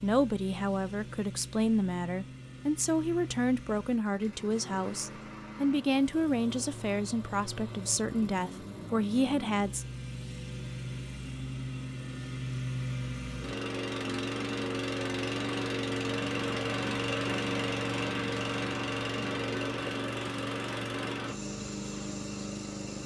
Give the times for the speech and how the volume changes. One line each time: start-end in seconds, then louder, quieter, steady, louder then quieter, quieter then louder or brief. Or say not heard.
0.0-9.8 steady.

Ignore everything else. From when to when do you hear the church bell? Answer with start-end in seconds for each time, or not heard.
not heard.